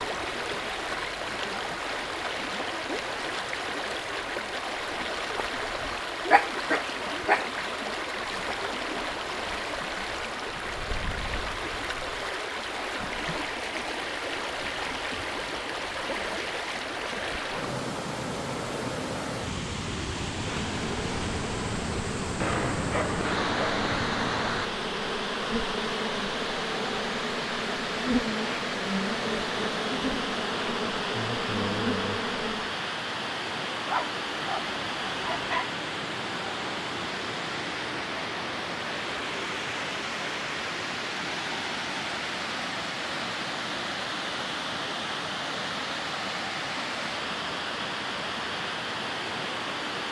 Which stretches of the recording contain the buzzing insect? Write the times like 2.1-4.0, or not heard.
20.4-32.8.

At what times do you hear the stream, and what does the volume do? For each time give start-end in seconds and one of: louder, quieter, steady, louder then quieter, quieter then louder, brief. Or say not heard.
0.0-50.0 steady.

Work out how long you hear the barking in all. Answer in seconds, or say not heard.
5 s.